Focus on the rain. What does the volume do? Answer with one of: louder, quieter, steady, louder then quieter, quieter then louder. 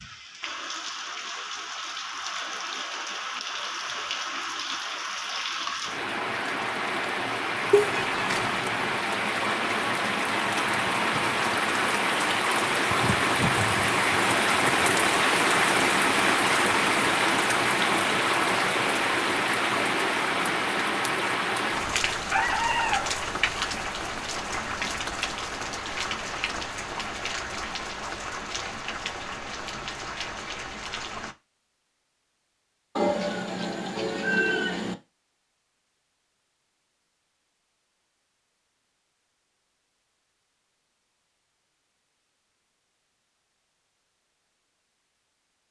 louder then quieter.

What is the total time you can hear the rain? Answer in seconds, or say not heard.
31 s.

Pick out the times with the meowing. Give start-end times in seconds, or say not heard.
7.7-8.6, 22.3-23.1, 33.0-35.0.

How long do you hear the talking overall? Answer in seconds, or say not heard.
not heard.